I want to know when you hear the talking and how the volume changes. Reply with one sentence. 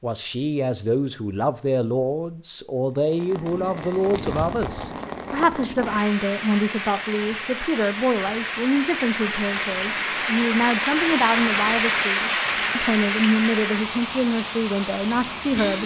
The talking can be heard from 0.0 to 15.8 s, at a steady volume.